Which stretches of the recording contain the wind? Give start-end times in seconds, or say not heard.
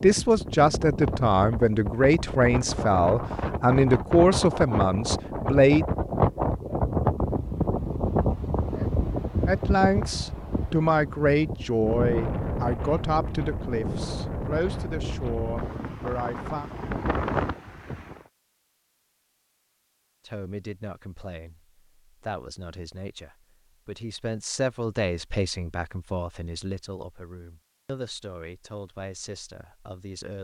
0.0-18.2.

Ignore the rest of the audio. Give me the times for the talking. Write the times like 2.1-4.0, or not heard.
0.0-5.8, 9.4-16.7, 20.2-30.3.